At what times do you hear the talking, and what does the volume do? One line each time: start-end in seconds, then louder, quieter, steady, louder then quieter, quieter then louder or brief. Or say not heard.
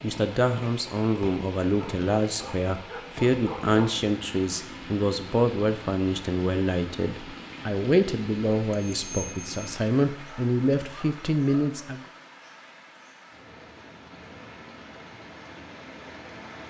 0.0-12.1 steady.